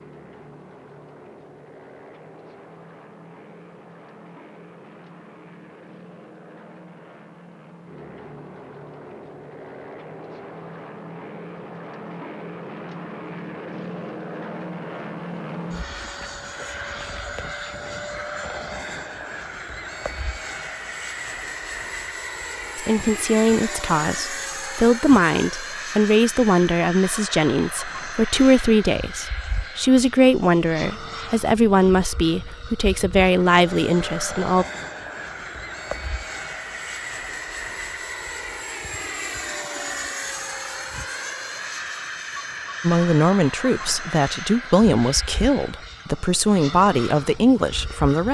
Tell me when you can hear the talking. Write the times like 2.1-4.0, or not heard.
22.8-34.6, 42.8-48.3.